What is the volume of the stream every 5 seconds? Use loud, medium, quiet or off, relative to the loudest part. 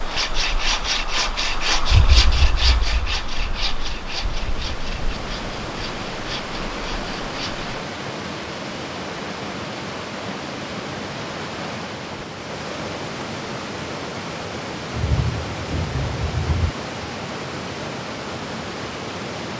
medium, loud, loud, loud.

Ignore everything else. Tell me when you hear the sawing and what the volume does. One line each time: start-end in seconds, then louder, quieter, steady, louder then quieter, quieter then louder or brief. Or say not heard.
0.0-7.7 quieter.